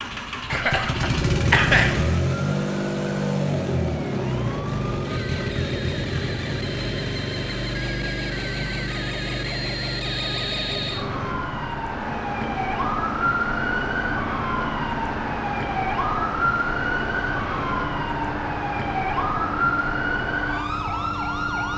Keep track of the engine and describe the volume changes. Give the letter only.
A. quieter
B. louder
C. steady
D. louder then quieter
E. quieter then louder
A.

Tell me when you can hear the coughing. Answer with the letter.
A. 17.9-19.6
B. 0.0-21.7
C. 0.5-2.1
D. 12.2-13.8
C.